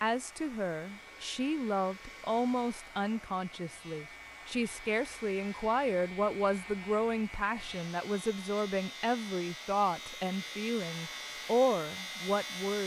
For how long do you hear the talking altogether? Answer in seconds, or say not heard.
13 s.